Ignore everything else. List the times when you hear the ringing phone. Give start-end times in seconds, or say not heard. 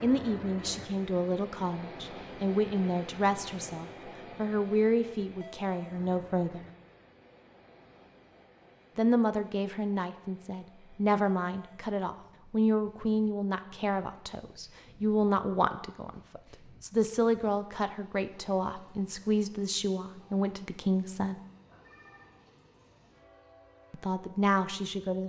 21.6-22.4.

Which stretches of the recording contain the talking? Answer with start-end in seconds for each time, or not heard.
0.0-6.6, 8.9-21.4, 23.9-25.2.